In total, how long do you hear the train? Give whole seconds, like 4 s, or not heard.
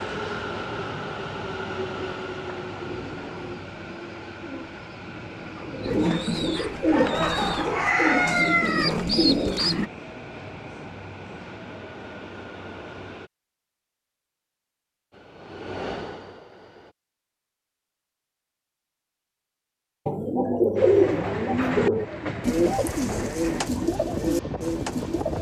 20 s.